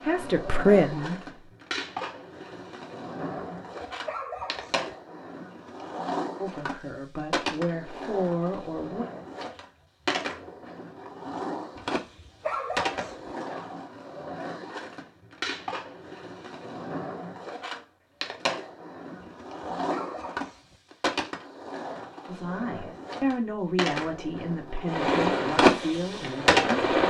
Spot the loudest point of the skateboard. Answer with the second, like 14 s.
26 s.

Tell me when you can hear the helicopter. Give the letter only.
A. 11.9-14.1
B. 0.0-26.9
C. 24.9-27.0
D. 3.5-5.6
C.